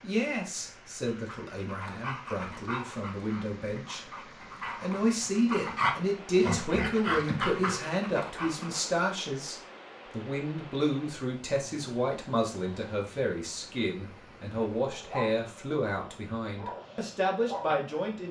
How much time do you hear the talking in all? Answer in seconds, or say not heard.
18 s.